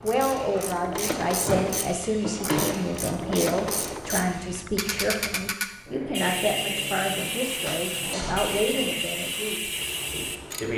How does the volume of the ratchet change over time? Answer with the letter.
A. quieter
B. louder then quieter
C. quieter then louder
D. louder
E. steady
E.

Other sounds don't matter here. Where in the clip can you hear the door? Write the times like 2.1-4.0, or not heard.
1.4-2.8, 7.7-8.6.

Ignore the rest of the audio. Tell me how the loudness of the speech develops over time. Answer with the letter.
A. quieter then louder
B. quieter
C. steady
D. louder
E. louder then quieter
C.